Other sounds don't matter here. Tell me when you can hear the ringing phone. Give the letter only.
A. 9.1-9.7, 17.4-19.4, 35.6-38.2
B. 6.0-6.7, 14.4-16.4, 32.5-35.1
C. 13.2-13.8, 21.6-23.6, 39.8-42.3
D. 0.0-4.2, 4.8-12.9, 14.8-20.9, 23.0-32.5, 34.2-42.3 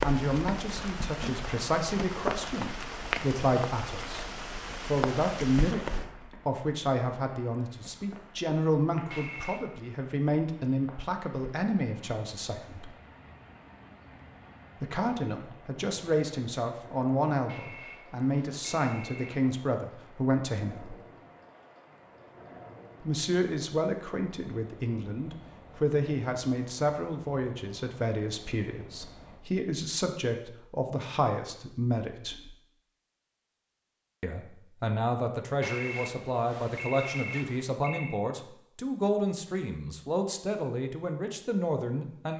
A.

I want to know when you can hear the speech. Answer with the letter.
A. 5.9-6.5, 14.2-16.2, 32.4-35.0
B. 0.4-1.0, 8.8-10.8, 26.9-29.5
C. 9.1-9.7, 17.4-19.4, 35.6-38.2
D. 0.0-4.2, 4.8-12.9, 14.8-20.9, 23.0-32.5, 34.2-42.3
D.